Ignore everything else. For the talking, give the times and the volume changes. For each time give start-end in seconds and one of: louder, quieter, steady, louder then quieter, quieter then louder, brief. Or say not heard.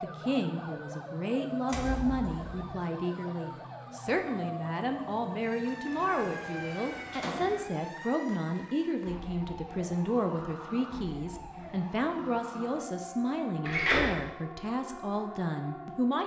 0.0-16.2 steady.